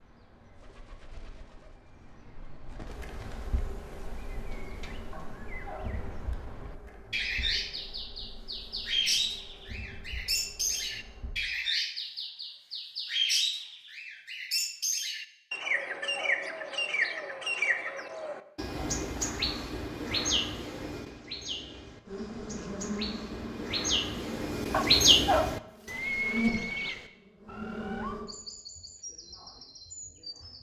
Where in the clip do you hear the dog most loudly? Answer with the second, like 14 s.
25 s.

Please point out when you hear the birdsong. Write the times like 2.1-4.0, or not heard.
0.0-30.5.